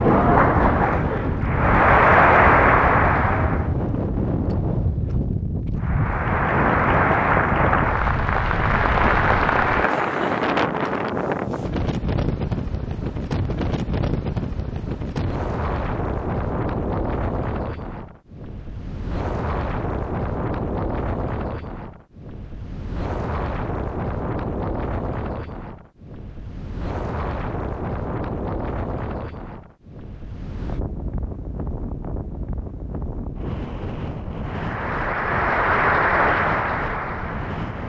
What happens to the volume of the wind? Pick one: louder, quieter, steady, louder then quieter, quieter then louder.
quieter.